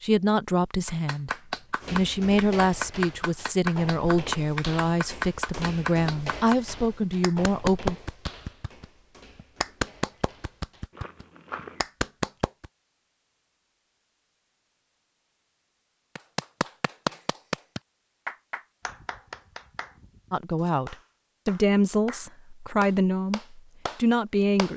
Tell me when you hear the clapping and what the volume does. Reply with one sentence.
You can hear the clapping from 0.8 to 12.7 s, at a steady volume; and from 16.1 to 24.7 s, getting quieter then louder.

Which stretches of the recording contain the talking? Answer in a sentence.
You can hear the talking from 0.0 to 8.0 s and from 20.3 to 24.7 s.